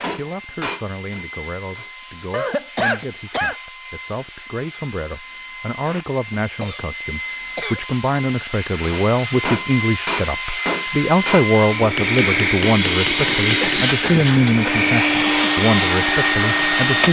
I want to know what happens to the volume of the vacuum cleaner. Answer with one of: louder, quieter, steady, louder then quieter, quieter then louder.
louder.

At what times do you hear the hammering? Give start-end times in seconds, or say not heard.
0.0-1.9, 8.8-14.9.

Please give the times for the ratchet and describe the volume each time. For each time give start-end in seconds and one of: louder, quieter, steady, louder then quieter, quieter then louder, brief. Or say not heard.
not heard.